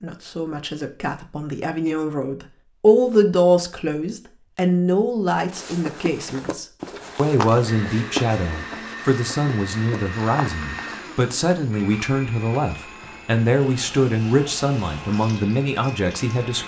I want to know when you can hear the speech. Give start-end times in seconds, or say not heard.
0.0-16.6.